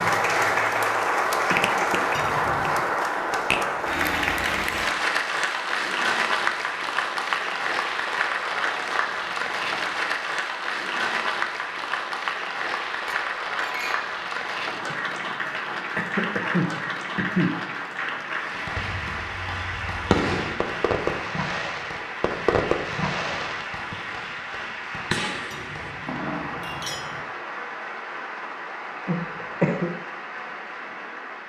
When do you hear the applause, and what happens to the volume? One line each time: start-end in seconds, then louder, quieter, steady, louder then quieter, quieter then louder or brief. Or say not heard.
0.0-31.4 quieter.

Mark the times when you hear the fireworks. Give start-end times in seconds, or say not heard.
18.5-24.5, 25.1-26.6.